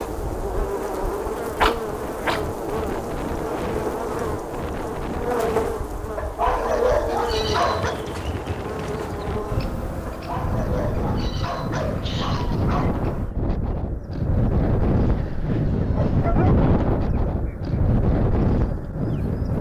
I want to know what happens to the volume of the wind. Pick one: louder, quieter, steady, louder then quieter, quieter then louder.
louder.